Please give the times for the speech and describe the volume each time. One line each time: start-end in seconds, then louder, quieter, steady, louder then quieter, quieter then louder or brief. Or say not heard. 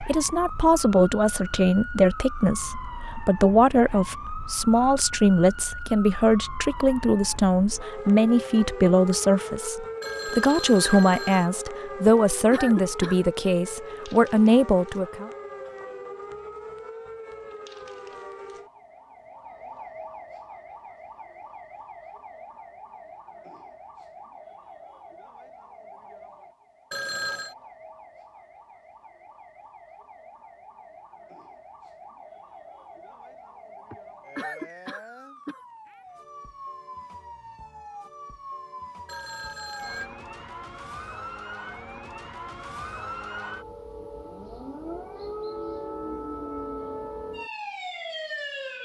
0.0-15.3 steady.